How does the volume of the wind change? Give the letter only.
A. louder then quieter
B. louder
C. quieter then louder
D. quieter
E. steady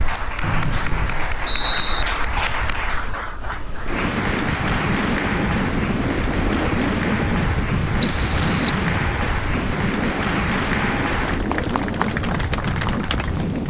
B.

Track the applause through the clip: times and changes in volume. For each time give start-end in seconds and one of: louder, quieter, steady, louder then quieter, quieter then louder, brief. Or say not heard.
0.0-13.6 steady.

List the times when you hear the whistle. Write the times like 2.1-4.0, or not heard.
0.4-2.0, 8.0-8.8.